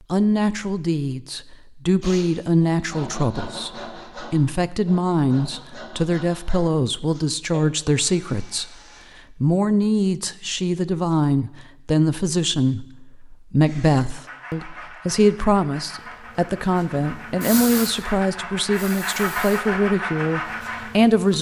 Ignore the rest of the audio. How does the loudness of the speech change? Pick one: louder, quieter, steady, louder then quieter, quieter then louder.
steady.